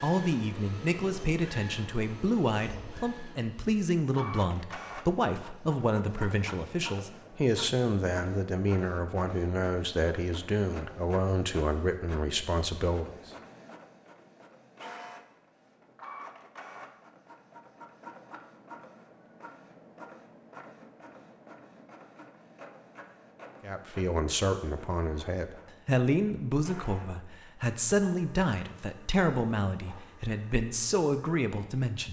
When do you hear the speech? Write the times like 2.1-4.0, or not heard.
0.0-13.2, 23.6-32.0.